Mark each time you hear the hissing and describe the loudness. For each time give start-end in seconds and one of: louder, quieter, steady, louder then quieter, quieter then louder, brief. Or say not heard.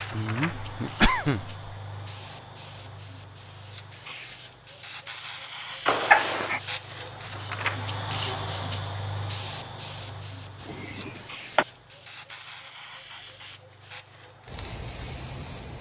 0.0-15.7 louder then quieter.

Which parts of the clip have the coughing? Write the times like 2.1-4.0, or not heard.
0.1-1.7, 5.8-6.6, 10.7-11.7.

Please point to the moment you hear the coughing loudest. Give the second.
6 s.